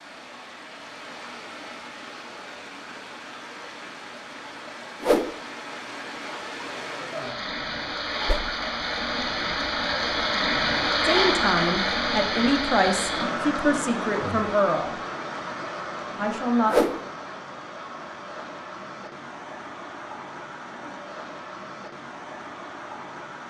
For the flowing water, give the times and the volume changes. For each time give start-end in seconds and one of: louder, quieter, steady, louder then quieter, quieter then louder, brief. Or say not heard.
0.0-23.4 louder then quieter.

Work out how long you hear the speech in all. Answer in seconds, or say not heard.
5 s.